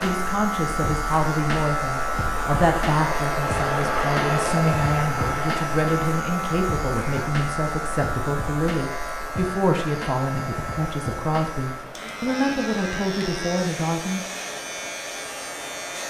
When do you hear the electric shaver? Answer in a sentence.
You can hear the electric shaver from 0.0 to 16.0 s.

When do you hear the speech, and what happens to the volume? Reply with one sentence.
You can hear the speech from 0.0 to 14.2 s, at a steady volume.